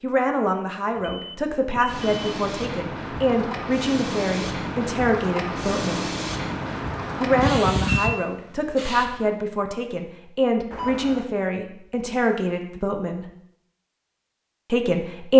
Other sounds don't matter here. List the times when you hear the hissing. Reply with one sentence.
You can hear the hissing from 1.9 to 9.2 s.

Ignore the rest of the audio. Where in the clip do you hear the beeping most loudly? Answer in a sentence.
The volume of the beeping peaks at 8 seconds.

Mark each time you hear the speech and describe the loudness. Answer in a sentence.
The speech can be heard from 0.0 to 6.0 s, at a steady volume; from 7.2 to 13.2 s, at a steady volume; and briefly from 14.7 to 15.3 s.